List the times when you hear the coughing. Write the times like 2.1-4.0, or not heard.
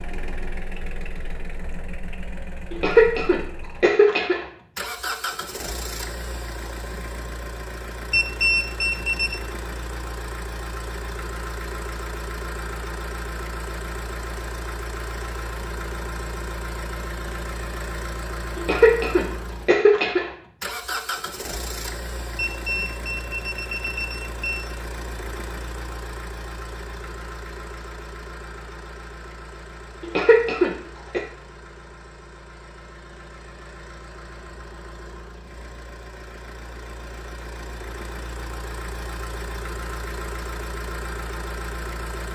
2.7-4.5, 18.6-20.3, 30.0-31.2.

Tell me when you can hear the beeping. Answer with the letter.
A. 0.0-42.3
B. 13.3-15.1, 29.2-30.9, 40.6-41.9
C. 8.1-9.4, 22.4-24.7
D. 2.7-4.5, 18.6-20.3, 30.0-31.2
C.